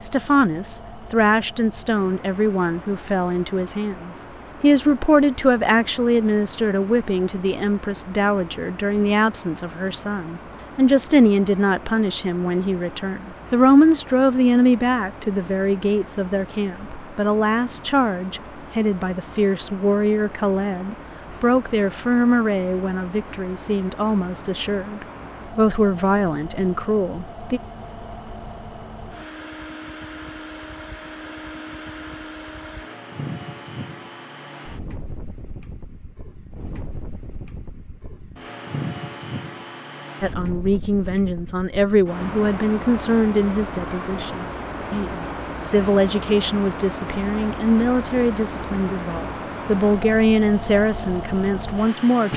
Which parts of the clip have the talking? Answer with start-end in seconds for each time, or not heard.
0.0-27.6, 40.2-52.3.